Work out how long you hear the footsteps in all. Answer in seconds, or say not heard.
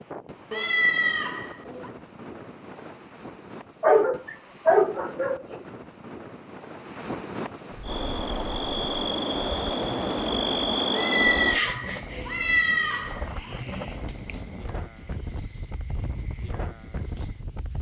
not heard.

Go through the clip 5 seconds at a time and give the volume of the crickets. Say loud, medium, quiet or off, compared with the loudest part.
off, loud, loud, medium.